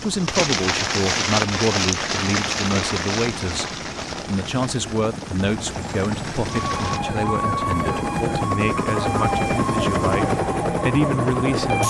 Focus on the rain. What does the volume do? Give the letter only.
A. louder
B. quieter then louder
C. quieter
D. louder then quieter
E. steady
C.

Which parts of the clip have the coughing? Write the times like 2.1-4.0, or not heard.
not heard.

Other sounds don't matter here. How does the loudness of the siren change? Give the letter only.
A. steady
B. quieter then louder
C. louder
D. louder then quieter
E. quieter
A.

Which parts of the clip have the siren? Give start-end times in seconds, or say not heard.
6.5-11.8.